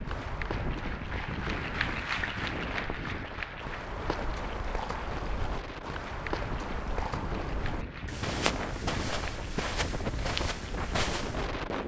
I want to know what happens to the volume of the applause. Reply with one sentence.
The volume of the applause goes down.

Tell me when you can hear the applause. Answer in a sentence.
The applause can be heard from 0.0 to 11.8 s.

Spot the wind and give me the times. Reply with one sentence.
The wind can be heard from 0.0 to 11.8 s.